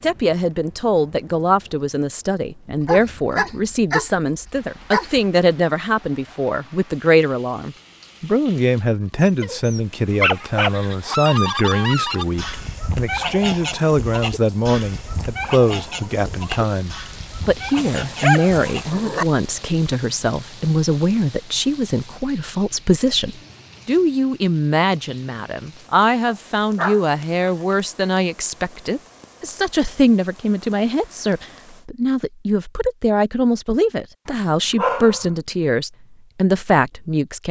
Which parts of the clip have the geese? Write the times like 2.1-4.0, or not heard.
10.2-18.9.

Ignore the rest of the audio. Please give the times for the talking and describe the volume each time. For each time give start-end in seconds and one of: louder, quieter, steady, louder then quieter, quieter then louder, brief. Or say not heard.
0.0-37.4 steady.